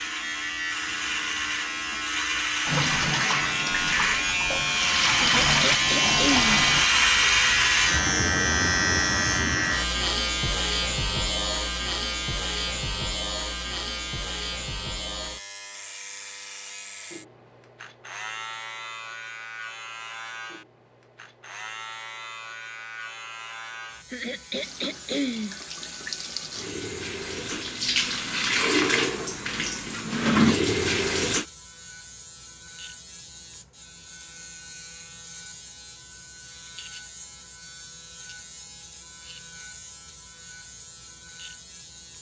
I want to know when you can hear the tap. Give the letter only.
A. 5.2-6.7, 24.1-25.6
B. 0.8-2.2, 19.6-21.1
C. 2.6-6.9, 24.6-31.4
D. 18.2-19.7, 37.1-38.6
C.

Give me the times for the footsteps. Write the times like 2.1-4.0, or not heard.
not heard.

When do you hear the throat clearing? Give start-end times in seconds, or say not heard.
5.2-6.7, 24.1-25.6.